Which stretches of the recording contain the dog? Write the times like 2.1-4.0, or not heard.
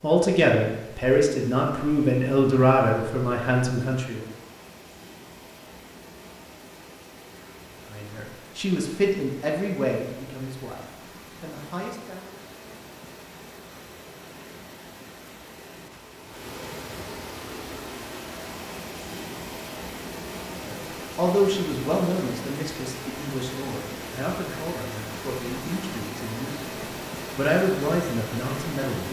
not heard.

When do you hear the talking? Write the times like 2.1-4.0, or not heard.
0.0-4.2, 7.9-12.3, 20.5-29.0.